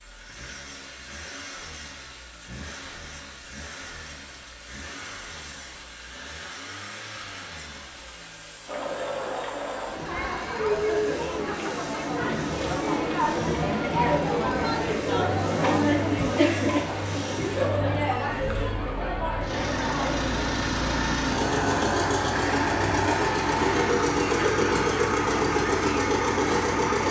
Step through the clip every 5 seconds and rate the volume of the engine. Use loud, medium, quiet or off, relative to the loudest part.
quiet, quiet, quiet, quiet, loud, loud.